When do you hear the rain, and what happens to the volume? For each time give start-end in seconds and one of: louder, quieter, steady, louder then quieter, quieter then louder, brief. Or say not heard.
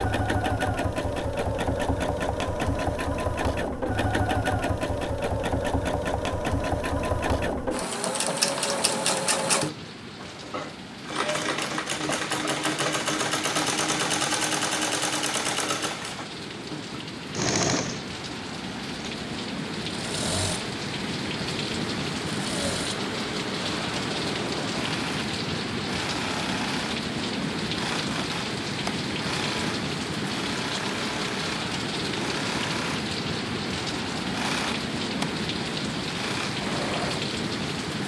8.5-38.0 louder.